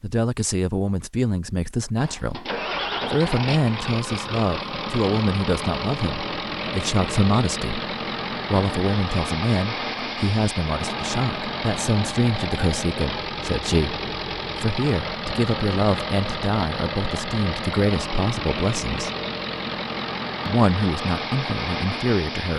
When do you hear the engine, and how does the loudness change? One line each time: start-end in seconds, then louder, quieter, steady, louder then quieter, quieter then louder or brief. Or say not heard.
2.0-22.5 steady.